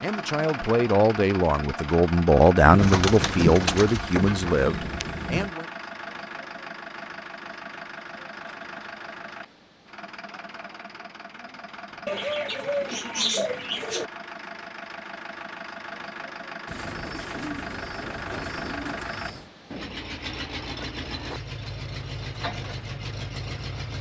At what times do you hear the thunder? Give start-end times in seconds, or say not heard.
2.6-5.5.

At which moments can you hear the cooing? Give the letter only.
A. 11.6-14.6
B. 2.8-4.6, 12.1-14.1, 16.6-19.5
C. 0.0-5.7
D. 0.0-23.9
B.